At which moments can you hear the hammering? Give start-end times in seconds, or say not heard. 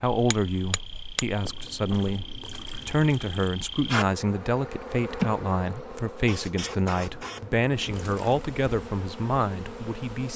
0.3-2.1.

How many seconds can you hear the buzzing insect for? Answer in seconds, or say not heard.
10 s.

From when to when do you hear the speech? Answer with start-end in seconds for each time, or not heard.
0.0-10.3.